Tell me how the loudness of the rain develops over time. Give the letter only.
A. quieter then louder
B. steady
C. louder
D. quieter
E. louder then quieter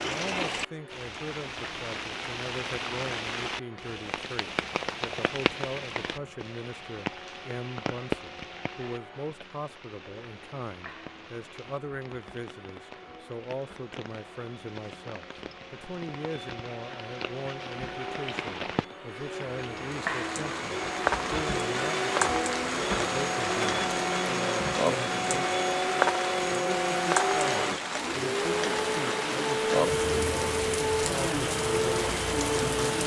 A.